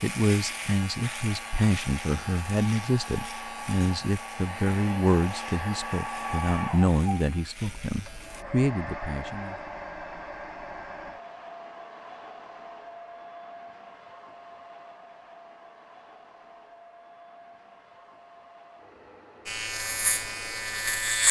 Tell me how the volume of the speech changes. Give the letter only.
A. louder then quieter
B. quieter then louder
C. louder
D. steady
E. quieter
D.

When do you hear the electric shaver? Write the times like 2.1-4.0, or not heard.
0.0-8.4, 19.4-21.2.